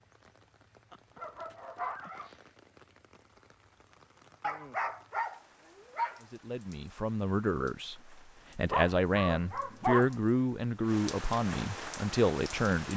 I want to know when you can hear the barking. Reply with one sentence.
You can hear the barking from 0.9 to 2.4 s, from 4.4 to 6.2 s and from 8.7 to 10.2 s.